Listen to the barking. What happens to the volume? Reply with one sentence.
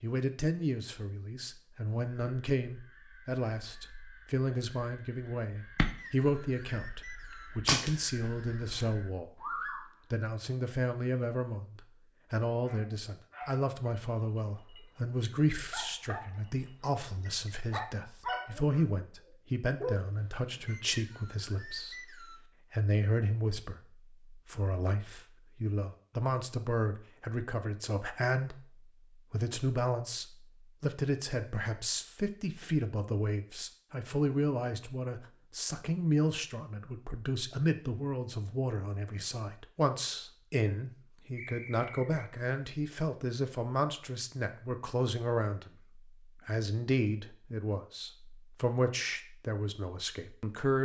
The loudness of the barking goes up.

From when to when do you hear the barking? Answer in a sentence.
The barking can be heard from 12.5 to 20.7 s.